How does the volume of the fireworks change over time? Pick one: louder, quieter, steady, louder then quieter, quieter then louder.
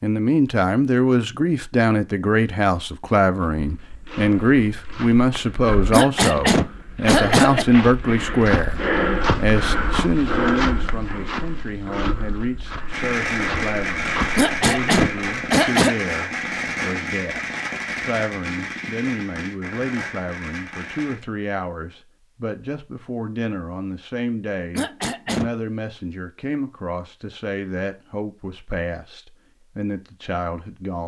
quieter.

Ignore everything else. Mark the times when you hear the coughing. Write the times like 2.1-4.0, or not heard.
5.9-7.7, 14.3-15.9, 24.7-25.5.